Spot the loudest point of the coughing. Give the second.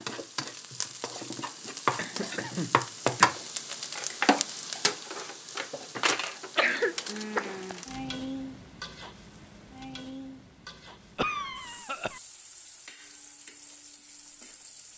7 s.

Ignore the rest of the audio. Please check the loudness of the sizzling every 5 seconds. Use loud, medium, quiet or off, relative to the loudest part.
loud, medium, quiet.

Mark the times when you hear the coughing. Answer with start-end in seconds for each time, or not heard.
1.1-3.3, 6.5-7.8, 11.2-12.2.